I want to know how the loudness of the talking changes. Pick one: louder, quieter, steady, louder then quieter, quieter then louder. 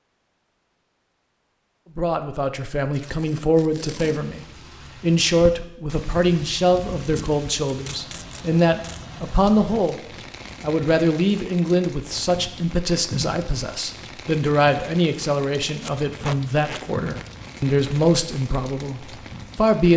steady.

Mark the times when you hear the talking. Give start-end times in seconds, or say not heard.
1.9-19.9.